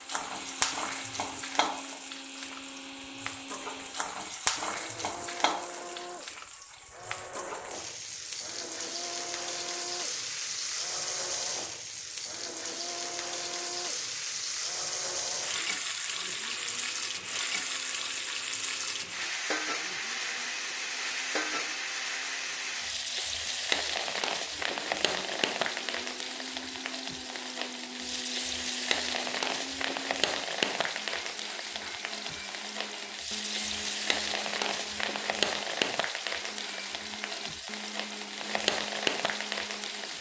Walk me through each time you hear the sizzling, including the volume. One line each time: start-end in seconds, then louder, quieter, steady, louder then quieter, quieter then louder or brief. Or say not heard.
0.0-40.1 steady.